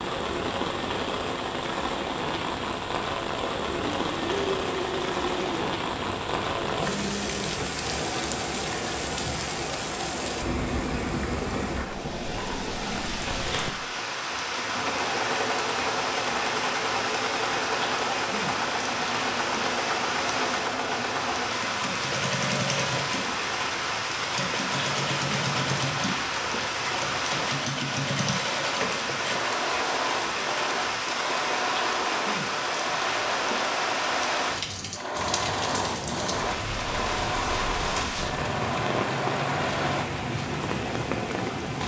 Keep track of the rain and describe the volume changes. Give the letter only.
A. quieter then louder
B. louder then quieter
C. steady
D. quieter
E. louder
C.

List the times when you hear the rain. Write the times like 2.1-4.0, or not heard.
0.0-41.8.